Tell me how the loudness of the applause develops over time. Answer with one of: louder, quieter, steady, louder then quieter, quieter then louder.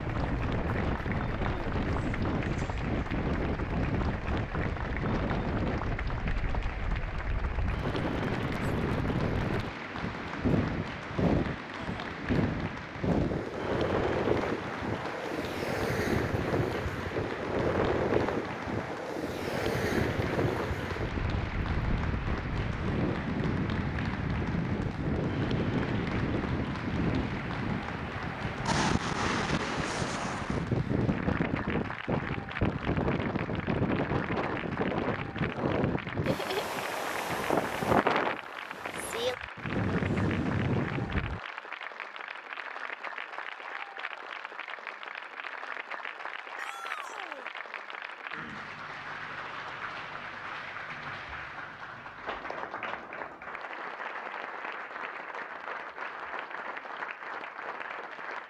steady.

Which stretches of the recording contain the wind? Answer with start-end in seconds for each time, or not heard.
0.0-41.4.